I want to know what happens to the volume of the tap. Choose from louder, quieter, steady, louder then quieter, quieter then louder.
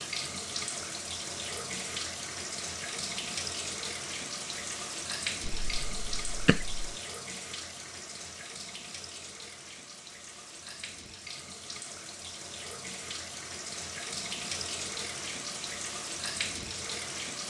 quieter then louder.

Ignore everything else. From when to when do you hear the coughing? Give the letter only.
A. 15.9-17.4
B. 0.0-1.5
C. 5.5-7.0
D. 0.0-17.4
C.